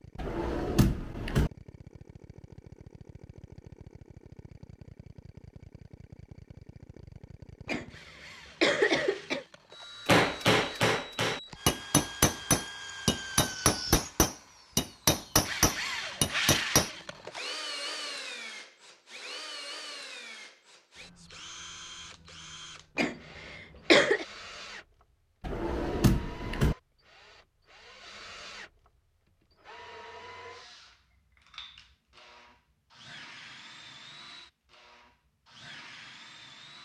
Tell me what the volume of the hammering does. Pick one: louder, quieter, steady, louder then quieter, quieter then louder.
steady.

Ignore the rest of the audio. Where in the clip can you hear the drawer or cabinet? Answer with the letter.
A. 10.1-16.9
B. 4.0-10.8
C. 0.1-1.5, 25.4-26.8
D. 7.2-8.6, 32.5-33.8
C.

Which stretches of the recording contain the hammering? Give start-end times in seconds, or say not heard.
10.1-16.9.